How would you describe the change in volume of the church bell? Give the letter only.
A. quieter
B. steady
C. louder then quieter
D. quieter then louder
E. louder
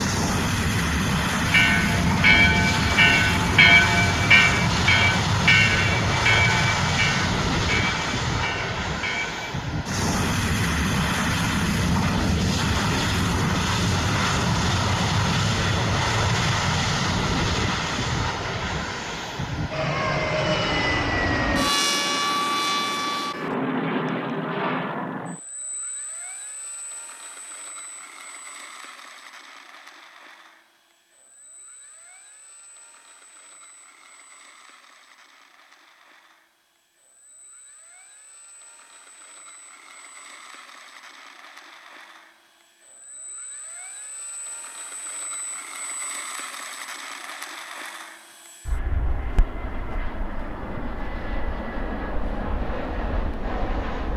A.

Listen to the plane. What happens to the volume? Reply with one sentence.
The volume of the plane goes down, then up.